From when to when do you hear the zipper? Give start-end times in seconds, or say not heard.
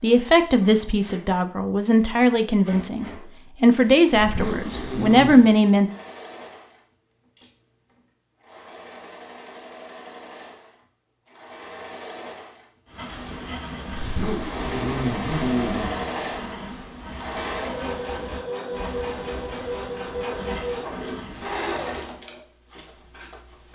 4.2-5.5, 13.9-15.9.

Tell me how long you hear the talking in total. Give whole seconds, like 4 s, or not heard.
6 s.